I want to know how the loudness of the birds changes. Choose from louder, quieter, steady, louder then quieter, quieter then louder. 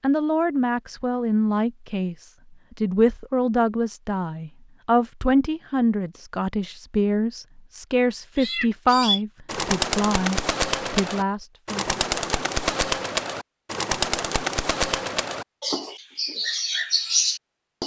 steady.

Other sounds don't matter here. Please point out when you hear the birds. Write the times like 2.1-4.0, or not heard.
8.3-17.8.